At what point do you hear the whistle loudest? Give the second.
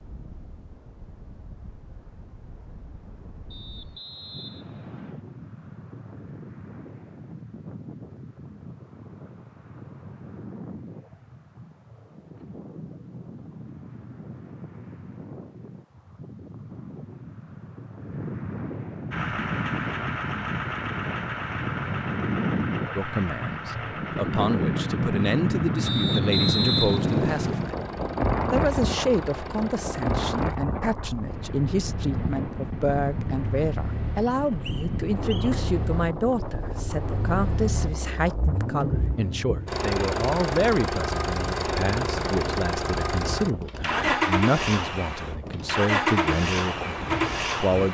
27 s.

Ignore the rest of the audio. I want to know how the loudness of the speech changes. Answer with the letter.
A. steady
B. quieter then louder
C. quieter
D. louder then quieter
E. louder
A.